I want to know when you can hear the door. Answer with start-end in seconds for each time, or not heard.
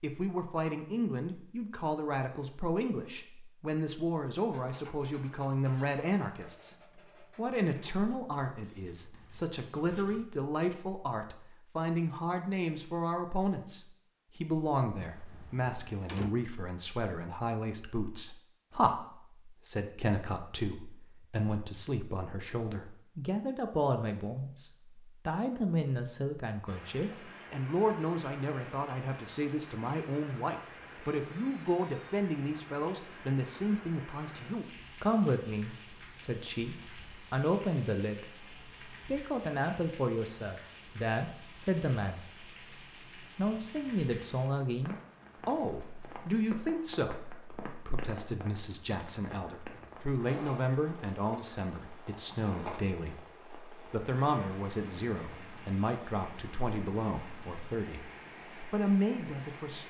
15.0-16.3.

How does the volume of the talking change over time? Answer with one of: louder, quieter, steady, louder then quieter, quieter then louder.
steady.